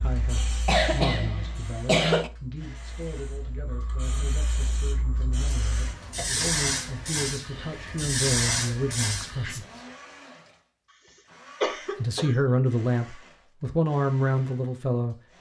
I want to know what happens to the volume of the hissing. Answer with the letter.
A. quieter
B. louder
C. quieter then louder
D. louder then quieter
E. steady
C.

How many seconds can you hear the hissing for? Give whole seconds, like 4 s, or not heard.
10 s.